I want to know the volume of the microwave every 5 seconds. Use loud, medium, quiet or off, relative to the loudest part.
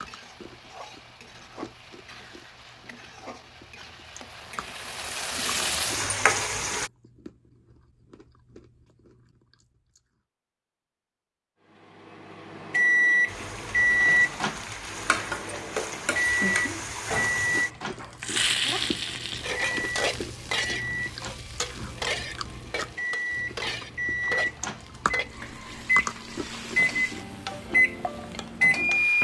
off, off, loud, medium, medium, loud.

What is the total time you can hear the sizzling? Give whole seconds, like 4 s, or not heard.
23 s.